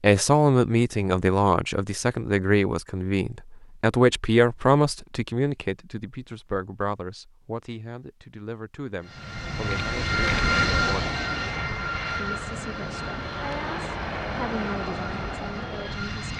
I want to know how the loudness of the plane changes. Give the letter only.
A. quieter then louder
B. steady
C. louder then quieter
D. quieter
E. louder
D.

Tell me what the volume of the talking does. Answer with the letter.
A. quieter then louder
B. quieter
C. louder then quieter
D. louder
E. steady
B.